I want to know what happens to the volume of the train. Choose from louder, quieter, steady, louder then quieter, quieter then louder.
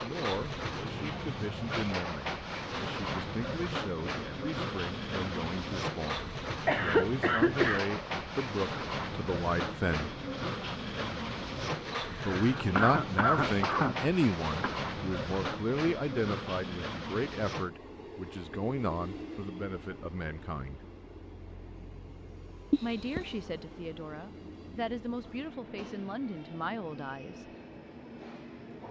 quieter.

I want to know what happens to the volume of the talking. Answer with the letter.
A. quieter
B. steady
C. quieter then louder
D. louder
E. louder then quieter
E.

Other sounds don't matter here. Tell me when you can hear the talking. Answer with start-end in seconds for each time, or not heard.
0.0-10.1, 12.2-20.8, 22.8-27.4.